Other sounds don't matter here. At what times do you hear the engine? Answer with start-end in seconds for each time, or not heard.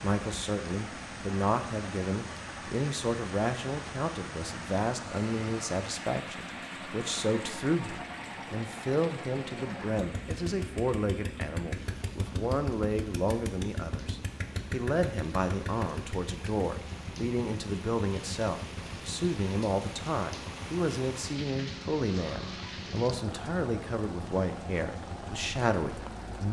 0.0-26.4.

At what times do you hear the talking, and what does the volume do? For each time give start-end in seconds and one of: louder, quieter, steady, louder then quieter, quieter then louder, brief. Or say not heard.
0.0-26.4 steady.